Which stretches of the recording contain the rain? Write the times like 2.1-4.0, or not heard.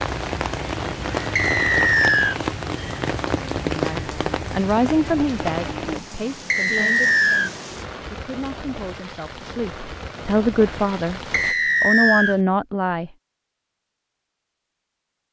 0.0-11.6.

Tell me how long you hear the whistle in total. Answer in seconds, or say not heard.
3 s.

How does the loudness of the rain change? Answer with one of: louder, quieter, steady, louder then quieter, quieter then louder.
quieter.